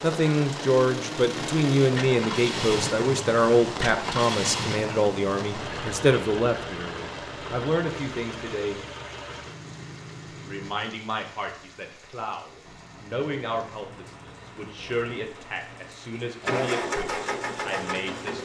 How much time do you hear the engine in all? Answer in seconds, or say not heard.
16 s.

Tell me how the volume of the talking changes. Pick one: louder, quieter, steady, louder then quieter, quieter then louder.
quieter.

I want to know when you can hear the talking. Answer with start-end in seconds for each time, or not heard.
0.0-8.8, 10.4-18.3.